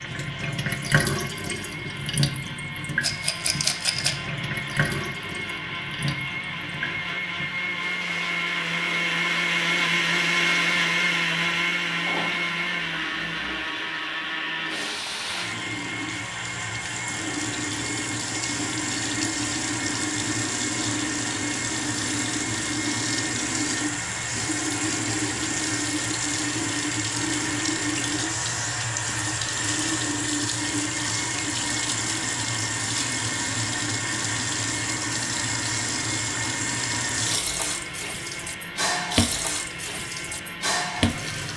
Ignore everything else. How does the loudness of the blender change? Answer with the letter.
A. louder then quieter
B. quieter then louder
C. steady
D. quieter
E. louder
A.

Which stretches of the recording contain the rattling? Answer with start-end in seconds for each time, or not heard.
3.0-4.2.